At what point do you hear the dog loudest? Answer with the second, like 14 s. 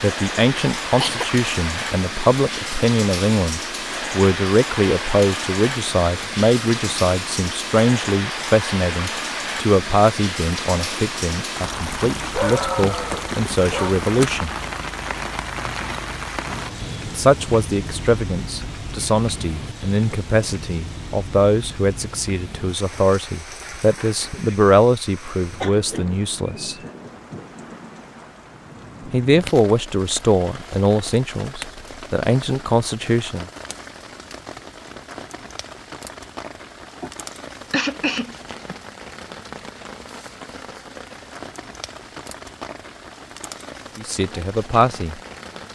13 s.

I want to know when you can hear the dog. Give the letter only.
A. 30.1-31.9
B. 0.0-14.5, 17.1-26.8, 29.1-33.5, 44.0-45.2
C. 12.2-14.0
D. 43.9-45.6
C.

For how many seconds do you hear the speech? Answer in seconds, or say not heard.
30 s.